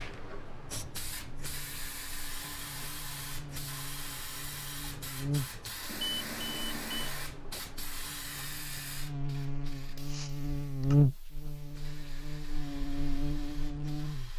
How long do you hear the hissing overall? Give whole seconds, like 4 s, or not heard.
14 s.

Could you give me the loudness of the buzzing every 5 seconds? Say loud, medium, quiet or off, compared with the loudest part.
quiet, medium, loud.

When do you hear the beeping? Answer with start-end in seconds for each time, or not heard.
5.8-7.2.